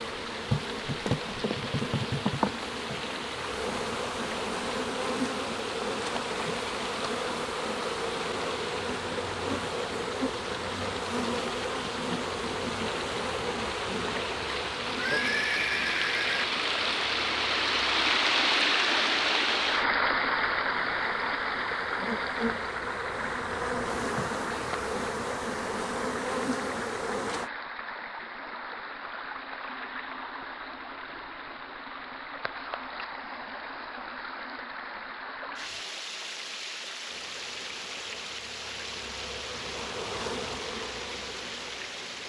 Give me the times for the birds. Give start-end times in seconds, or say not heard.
not heard.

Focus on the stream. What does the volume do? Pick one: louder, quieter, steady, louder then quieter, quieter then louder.
louder then quieter.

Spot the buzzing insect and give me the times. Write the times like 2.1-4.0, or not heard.
0.0-27.5, 37.0-42.2.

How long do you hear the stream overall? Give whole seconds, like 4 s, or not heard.
42 s.